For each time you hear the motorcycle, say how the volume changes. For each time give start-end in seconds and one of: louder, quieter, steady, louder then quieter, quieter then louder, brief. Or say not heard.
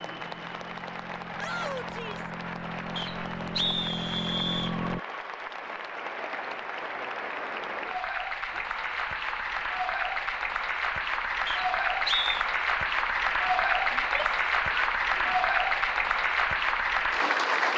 0.0-5.0 louder.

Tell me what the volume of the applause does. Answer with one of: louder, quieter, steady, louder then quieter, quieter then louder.
louder.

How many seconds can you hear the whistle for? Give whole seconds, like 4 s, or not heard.
3 s.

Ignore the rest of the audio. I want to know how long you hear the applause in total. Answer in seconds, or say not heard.
18 s.